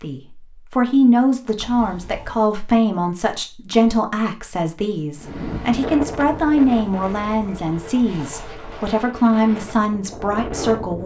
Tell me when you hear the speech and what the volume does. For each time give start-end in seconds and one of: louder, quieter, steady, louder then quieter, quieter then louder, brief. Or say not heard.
0.0-11.0 steady.